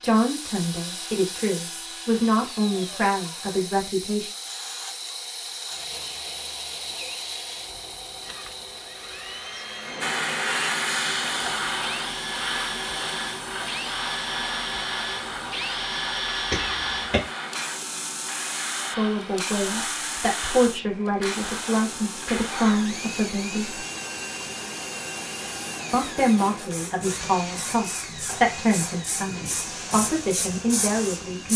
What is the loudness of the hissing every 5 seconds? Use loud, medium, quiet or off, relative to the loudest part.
medium, medium, loud, medium, medium, medium, loud.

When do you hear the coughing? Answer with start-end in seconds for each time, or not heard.
16.5-17.3.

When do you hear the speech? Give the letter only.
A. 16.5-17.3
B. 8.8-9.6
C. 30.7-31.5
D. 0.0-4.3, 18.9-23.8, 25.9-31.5
D.